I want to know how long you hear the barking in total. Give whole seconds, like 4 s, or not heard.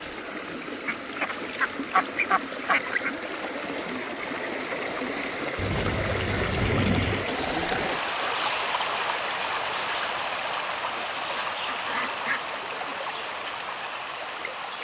not heard.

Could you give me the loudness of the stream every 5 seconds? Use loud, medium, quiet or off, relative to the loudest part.
medium, loud, loud.